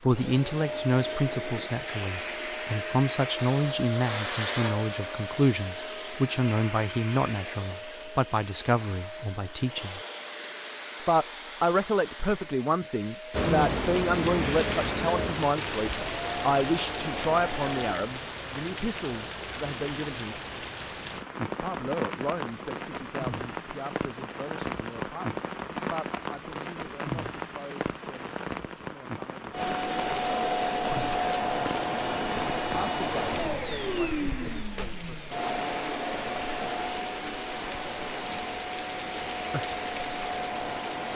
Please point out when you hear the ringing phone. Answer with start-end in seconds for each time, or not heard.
not heard.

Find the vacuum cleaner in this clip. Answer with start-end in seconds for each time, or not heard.
0.0-18.0, 29.5-41.1.